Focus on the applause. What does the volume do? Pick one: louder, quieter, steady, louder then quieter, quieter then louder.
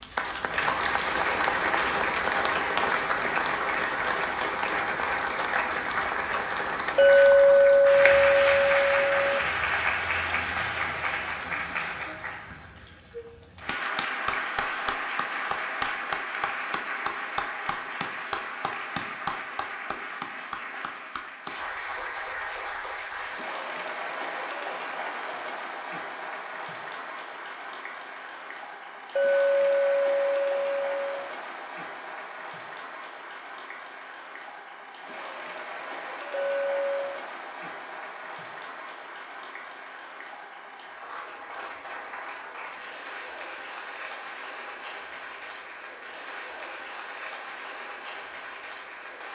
quieter.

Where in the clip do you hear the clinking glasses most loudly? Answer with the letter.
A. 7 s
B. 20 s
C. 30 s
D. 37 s
A.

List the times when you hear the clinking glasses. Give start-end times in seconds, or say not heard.
7.0-9.4, 29.1-31.3, 36.3-37.2.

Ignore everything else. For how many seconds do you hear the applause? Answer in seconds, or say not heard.
49 s.